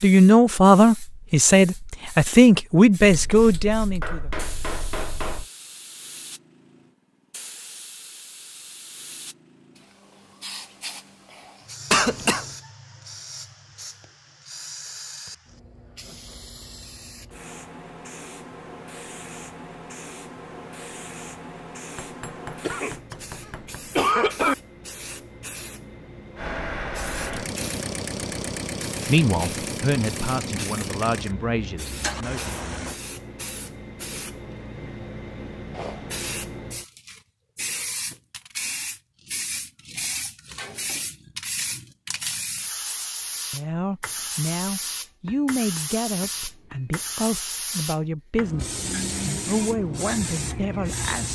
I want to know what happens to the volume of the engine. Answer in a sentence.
The volume of the engine stays about the same.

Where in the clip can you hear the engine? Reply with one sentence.
You can hear the engine from 26.4 to 33.0 s.